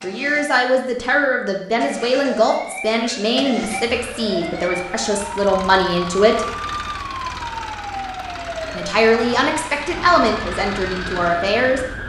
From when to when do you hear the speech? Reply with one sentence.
The speech can be heard from 0.0 to 6.5 s and from 8.7 to 12.0 s.